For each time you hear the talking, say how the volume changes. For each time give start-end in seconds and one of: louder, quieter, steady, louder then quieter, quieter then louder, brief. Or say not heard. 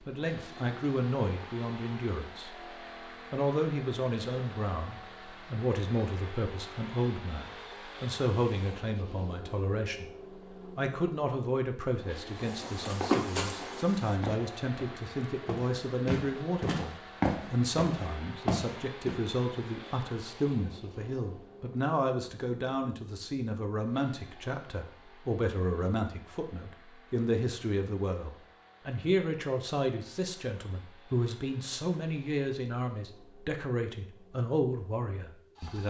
0.1-2.5 brief
3.3-35.8 steady.